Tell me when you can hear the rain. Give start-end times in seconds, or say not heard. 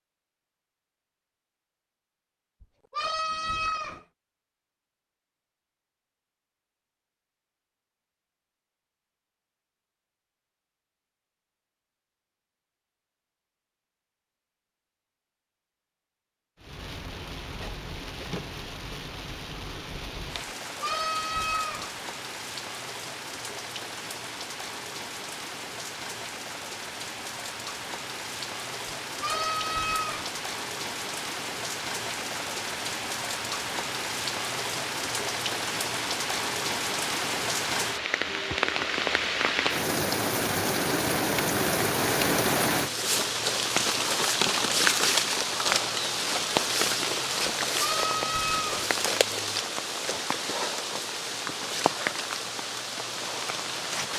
16.6-54.1.